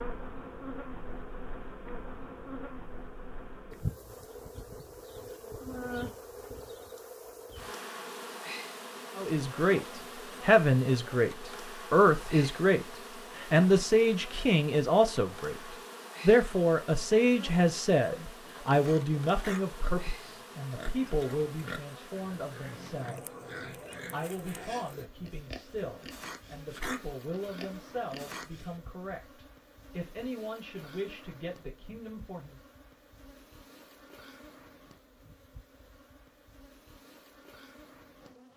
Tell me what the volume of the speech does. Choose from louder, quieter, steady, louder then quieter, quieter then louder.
quieter.